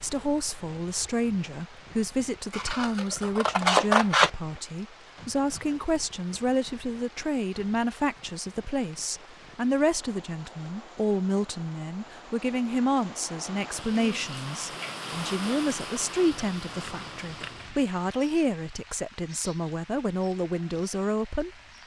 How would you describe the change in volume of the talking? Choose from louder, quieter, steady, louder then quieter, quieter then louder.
steady.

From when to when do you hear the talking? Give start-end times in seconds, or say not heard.
0.0-21.5.